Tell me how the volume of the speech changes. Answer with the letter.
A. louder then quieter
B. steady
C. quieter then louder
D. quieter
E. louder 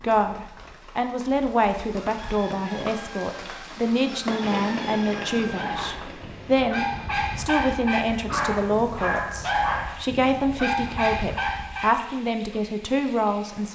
B.